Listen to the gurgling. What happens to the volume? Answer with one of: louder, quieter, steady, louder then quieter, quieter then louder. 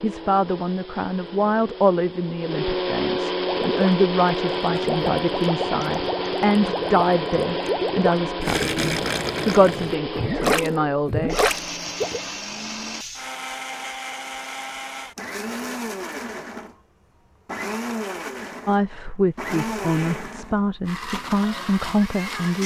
louder.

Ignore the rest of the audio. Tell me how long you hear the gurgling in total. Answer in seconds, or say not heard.
9 s.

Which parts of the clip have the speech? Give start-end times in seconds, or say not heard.
0.0-11.5, 18.6-22.6.